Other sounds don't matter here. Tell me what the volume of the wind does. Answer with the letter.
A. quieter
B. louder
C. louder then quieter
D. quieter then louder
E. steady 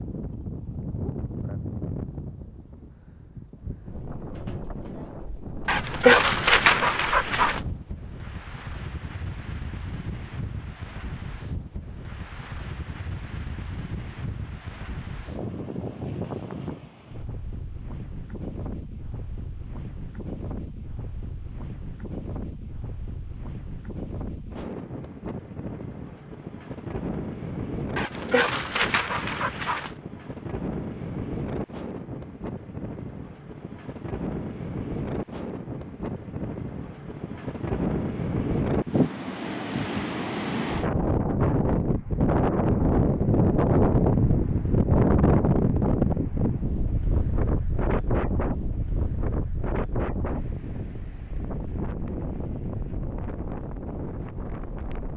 B.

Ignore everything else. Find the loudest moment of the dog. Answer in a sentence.
The loudest moment of the dog is at 6 seconds.